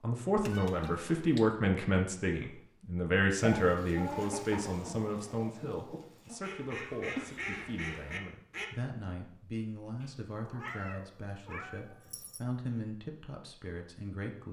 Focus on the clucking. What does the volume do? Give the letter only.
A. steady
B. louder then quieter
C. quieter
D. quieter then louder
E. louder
D.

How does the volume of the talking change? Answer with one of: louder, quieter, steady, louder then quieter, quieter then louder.
quieter.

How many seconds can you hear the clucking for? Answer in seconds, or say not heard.
5 s.